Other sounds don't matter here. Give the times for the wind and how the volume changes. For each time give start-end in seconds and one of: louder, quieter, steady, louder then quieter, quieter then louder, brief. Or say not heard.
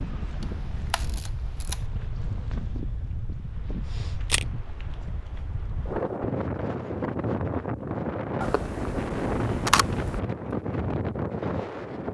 0.0-12.0 louder.